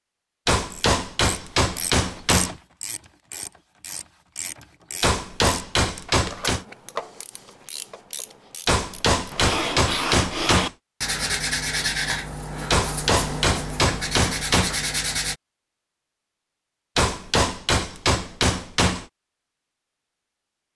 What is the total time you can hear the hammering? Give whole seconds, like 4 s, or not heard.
10 s.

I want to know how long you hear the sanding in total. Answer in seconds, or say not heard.
6 s.